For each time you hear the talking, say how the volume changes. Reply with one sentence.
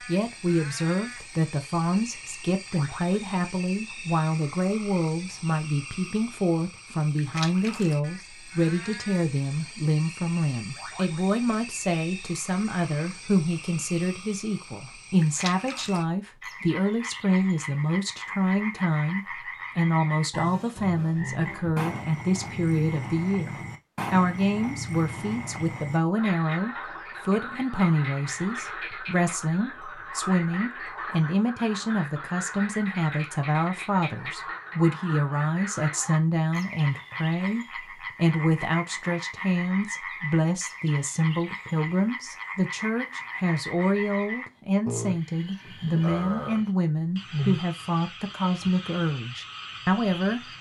The talking can be heard from 0.1 to 50.4 s, at a steady volume.